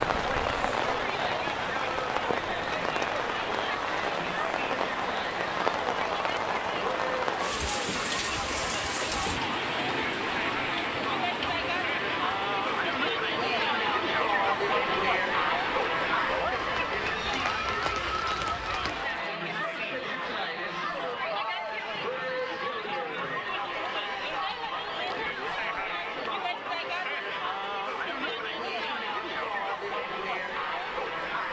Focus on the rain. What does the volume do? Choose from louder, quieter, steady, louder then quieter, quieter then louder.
quieter.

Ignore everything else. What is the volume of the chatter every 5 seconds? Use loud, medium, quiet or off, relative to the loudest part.
medium, medium, loud, loud, loud, loud, loud.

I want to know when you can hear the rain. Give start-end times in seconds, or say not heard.
0.0-19.2.